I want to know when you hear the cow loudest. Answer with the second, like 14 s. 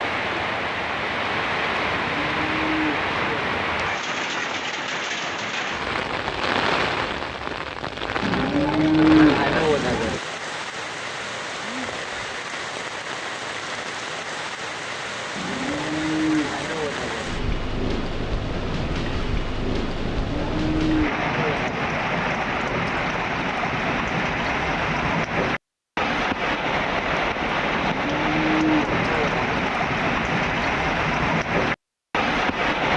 9 s.